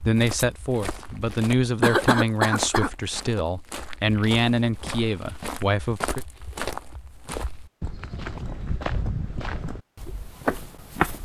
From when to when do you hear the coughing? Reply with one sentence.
The coughing can be heard from 1.8 to 2.9 s.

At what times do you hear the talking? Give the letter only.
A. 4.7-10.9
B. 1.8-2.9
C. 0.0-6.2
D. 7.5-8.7
C.